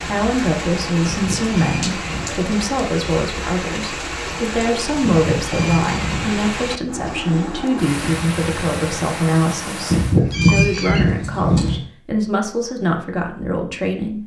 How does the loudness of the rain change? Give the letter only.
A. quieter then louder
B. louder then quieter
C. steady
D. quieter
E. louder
C.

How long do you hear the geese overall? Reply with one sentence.
The geese can be heard for 5 seconds in total.